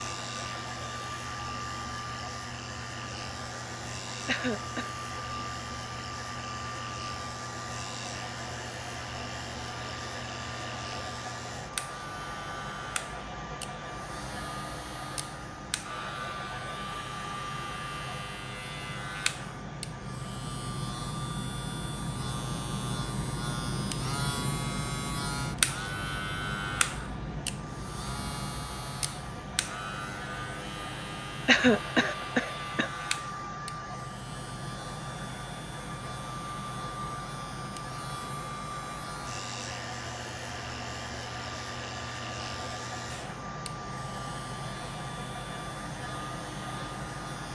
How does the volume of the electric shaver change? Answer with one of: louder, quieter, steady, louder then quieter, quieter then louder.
louder then quieter.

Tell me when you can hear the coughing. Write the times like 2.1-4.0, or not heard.
4.2-4.9, 31.4-32.9.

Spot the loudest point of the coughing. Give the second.
32 s.